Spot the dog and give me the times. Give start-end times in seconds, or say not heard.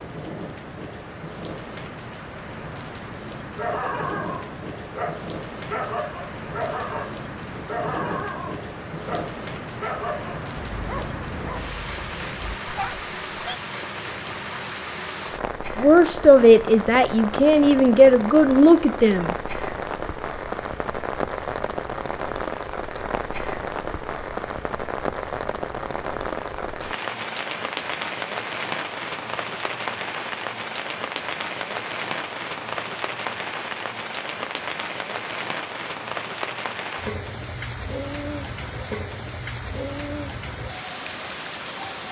3.5-13.6.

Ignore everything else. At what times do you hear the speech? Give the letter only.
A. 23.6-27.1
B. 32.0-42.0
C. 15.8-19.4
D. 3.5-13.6
C.